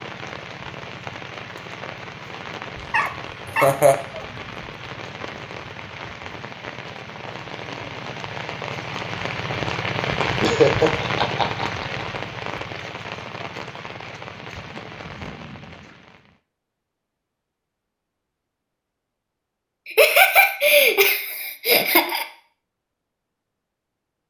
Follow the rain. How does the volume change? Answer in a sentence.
The loudness of the rain goes up, then down.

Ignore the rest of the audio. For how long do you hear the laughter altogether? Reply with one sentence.
You can hear the laughter for 4 seconds altogether.